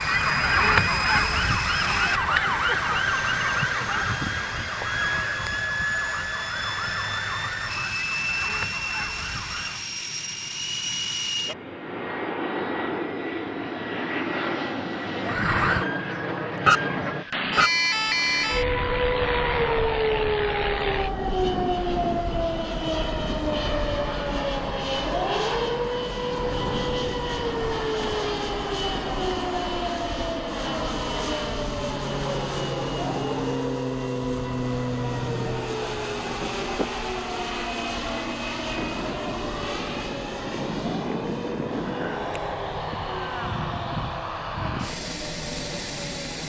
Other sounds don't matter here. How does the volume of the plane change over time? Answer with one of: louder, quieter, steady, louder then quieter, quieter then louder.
steady.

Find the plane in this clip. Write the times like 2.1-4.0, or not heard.
0.0-46.4.